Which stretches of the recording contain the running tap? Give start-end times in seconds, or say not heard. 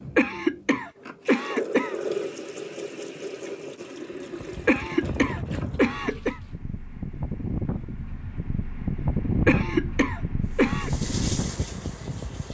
0.0-6.6, 10.4-12.4.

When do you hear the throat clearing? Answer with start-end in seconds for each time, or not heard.
0.1-1.9, 4.7-6.3, 9.4-10.9.